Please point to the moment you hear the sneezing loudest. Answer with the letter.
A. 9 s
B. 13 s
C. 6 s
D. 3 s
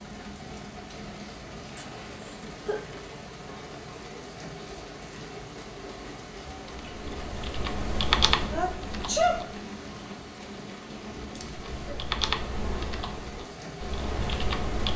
A.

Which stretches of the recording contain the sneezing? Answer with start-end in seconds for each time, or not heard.
1.8-2.8, 8.5-9.4.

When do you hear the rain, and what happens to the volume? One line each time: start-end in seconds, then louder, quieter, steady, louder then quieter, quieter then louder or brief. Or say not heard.
0.0-14.9 steady.